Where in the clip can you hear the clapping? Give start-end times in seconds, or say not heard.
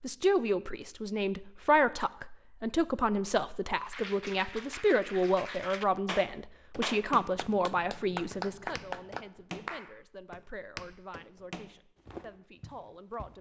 3.9-10.0.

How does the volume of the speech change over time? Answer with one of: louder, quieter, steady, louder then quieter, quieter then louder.
quieter.